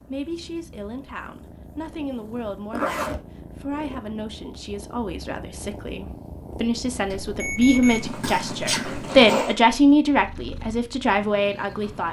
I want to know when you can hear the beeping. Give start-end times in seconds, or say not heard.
7.2-9.1.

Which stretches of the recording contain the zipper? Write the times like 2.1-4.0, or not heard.
2.7-3.2, 8.1-9.6.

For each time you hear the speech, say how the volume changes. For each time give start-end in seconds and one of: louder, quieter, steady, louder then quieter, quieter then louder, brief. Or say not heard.
0.0-12.0 louder.